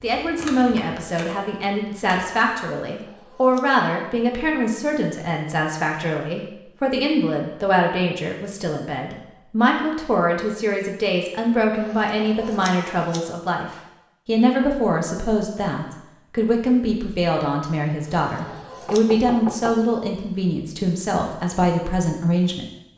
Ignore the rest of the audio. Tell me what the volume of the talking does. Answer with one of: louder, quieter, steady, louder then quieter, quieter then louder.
steady.